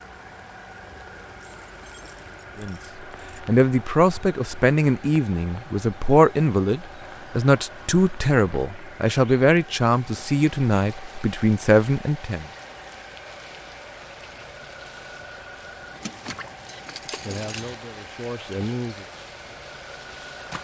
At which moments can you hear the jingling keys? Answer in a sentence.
The jingling keys can be heard from 1.4 to 3.4 s and from 16.0 to 17.8 s.